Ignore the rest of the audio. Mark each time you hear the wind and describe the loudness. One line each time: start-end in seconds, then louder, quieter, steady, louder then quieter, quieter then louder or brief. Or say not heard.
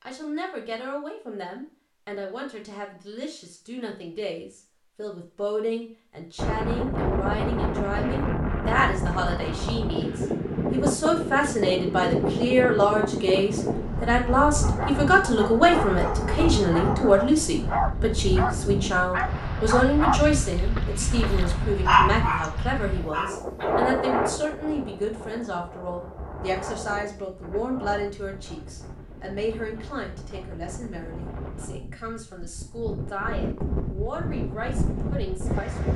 6.3-35.9 quieter.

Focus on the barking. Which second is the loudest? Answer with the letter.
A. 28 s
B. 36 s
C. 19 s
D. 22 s
D.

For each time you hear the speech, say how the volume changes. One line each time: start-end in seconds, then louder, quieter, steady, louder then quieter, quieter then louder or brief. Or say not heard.
0.0-35.9 louder then quieter.